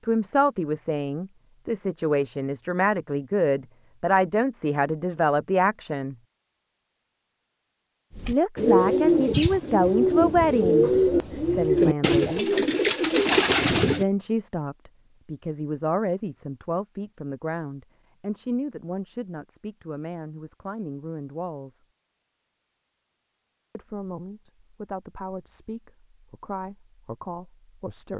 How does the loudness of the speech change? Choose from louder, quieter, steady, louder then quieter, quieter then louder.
quieter.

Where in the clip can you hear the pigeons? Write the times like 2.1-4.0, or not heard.
8.2-14.1.